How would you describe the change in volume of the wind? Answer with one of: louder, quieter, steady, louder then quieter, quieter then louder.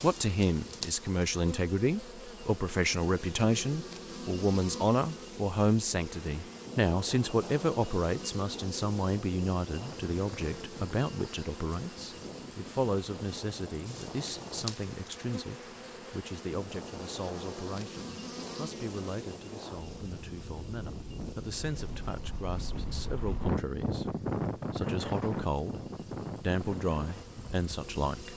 louder.